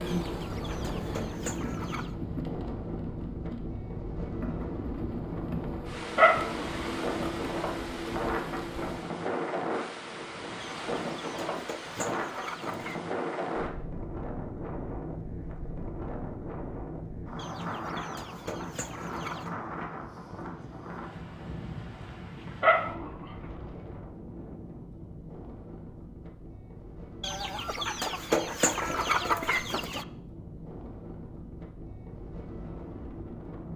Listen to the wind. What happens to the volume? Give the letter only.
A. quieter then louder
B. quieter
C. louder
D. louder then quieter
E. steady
B.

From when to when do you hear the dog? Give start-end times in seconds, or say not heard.
6.2-6.8, 22.6-23.2.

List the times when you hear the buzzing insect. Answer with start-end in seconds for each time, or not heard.
0.0-9.1.